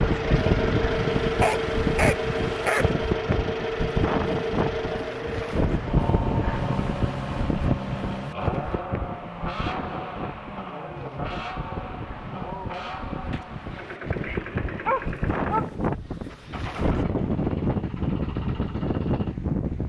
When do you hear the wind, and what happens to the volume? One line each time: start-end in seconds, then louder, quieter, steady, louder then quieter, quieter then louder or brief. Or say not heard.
0.0-19.8 quieter then louder.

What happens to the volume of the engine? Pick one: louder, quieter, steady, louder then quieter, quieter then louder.
quieter.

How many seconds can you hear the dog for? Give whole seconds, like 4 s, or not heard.
3 s.